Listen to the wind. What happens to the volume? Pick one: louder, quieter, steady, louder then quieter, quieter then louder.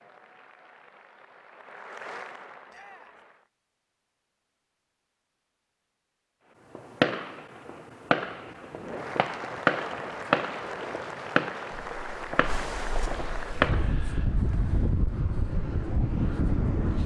louder.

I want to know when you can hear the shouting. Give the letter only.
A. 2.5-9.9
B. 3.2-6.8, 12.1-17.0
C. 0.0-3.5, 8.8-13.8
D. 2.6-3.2
D.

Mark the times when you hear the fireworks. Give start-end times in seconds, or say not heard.
6.8-14.2.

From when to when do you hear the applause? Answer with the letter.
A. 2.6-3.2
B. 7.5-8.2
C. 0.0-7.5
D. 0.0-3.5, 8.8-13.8
D.